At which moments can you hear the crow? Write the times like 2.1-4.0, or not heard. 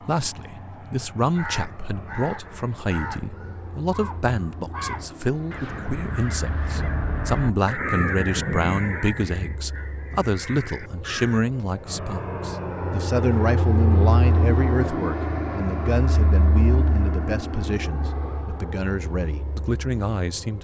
1.2-11.4.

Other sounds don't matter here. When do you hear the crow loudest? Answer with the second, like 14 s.
8 s.